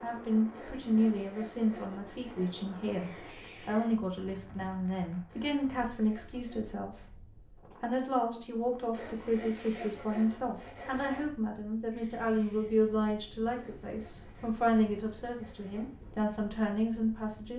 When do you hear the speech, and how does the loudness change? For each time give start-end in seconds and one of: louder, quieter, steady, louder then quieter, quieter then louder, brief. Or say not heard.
0.0-17.5 steady.